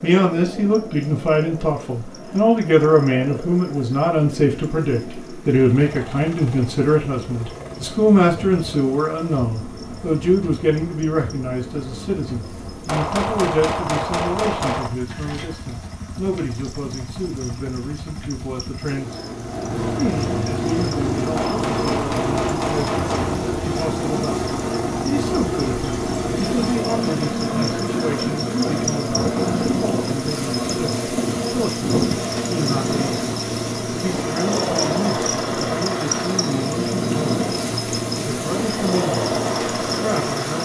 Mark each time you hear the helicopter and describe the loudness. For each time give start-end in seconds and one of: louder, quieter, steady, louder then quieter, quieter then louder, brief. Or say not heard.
0.0-40.5 louder.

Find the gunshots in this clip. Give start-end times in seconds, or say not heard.
12.8-14.9, 21.4-23.4.